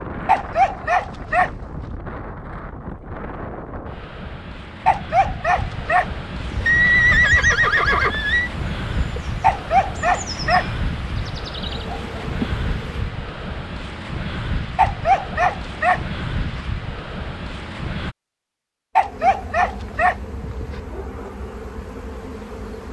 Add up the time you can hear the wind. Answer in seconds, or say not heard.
18 s.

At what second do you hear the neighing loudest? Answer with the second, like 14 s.
7 s.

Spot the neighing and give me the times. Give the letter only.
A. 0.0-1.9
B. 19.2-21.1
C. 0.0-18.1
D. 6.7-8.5
D.